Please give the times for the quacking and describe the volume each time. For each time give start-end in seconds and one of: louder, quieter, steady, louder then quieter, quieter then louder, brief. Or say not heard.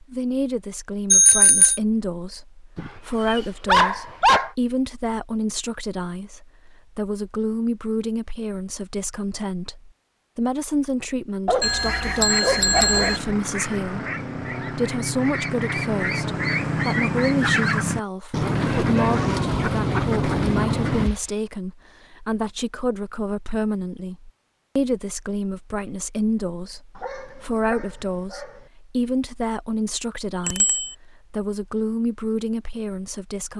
11.8-21.1 louder.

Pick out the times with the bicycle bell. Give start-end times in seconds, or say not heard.
1.1-1.8, 11.6-13.2, 30.4-30.9.